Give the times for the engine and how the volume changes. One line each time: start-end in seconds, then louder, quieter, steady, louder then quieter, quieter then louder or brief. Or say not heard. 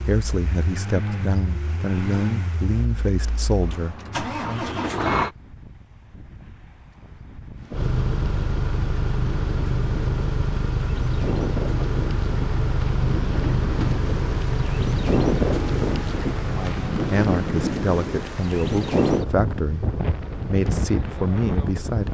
0.0-5.3 quieter then louder
7.7-22.0 quieter.